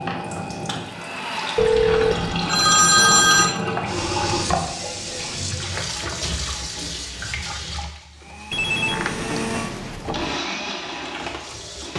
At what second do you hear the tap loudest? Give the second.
4 s.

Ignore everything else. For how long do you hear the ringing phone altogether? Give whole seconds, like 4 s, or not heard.
4 s.